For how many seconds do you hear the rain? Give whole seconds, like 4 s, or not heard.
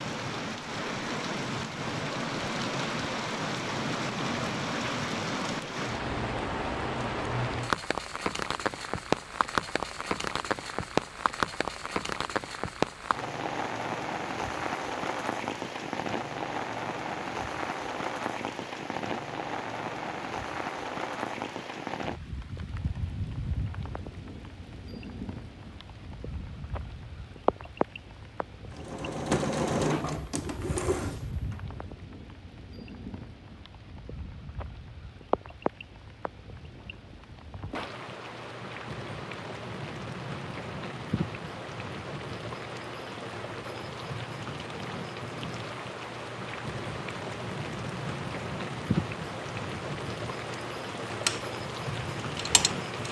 53 s.